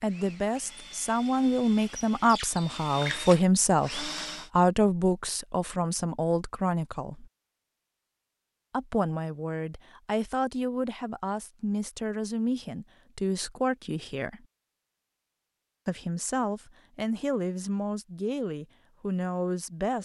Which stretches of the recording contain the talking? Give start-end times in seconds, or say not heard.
0.0-7.3, 8.7-14.4, 15.8-20.0.